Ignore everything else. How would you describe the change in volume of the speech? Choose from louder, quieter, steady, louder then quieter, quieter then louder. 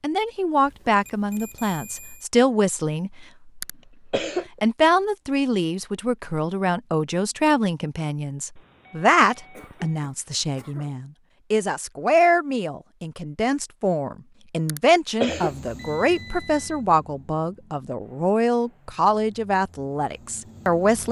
steady.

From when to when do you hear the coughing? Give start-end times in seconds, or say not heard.
3.6-4.6, 9.5-10.9, 14.7-15.7.